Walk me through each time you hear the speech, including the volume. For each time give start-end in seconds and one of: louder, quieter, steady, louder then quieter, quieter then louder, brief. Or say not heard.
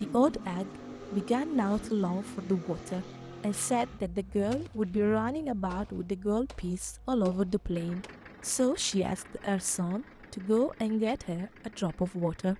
0.0-12.5 steady.